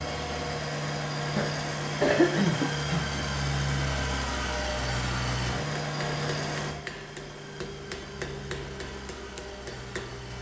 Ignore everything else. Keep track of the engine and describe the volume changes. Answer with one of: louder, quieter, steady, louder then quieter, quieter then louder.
quieter.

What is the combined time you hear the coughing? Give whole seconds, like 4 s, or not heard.
2 s.